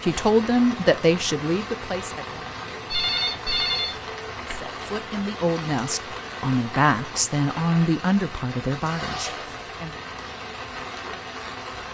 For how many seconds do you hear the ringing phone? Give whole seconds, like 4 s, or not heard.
2 s.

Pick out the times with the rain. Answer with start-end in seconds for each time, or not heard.
0.0-11.8.